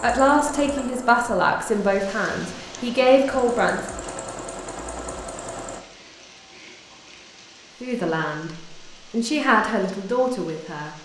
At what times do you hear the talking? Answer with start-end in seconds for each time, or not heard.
0.0-3.8, 7.8-10.9.